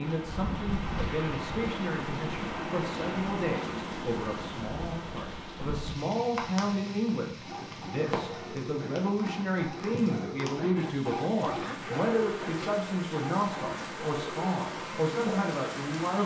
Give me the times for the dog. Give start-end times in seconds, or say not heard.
7.4-15.4.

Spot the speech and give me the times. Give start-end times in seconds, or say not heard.
0.0-16.2.